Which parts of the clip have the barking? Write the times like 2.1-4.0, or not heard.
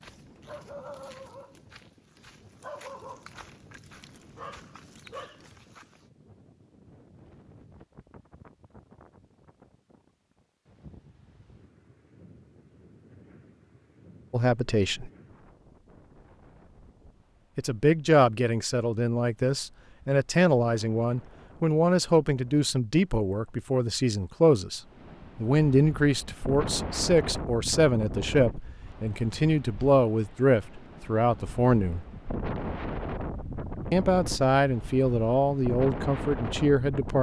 0.0-6.0.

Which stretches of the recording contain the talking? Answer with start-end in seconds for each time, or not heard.
14.3-15.1, 17.6-32.0, 33.9-37.1.